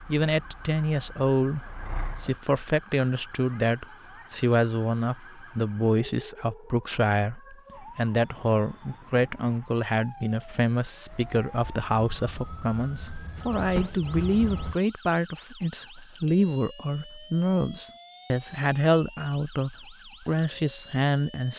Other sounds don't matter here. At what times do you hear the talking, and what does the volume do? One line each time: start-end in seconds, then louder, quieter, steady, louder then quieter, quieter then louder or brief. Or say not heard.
0.1-21.5 steady.